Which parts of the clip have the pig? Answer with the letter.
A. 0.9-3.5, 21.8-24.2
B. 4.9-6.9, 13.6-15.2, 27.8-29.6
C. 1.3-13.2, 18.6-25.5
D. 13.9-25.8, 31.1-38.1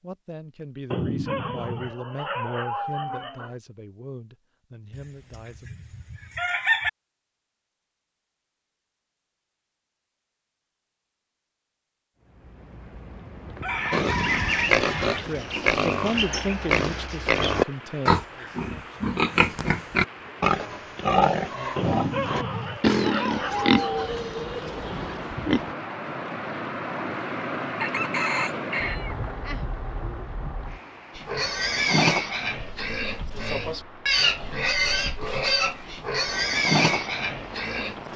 D.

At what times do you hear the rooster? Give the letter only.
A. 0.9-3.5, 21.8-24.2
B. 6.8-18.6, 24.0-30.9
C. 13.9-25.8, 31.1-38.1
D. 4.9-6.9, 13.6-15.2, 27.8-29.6
D.